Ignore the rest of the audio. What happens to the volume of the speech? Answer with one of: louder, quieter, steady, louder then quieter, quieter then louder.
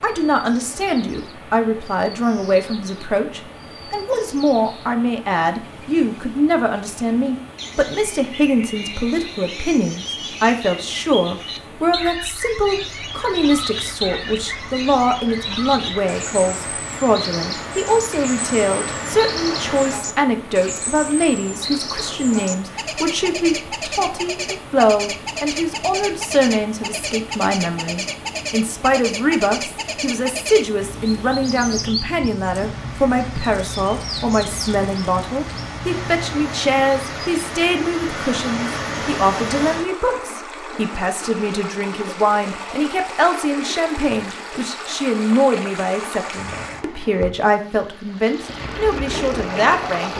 steady.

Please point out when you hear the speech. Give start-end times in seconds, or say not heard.
0.0-50.1.